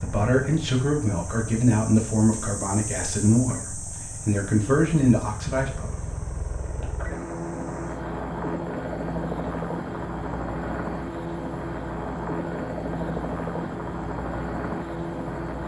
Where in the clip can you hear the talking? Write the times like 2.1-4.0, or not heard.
0.0-5.8.